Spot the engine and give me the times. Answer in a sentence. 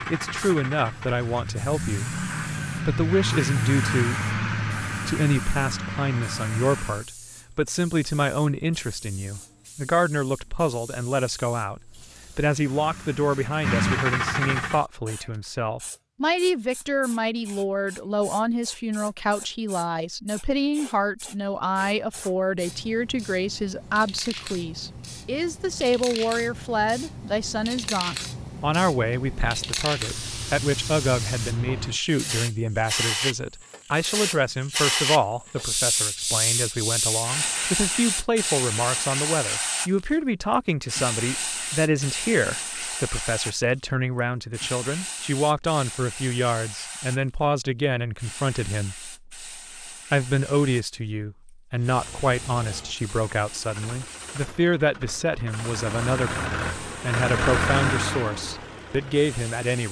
The engine can be heard from 0.0 to 7.0 s, from 12.5 to 14.8 s and from 51.7 to 59.5 s.